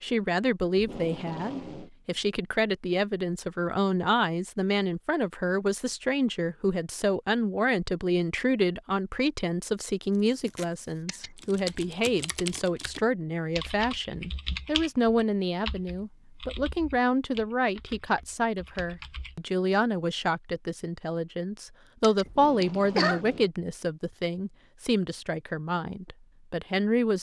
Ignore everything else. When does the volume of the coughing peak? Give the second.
23 s.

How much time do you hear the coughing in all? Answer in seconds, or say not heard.
2 s.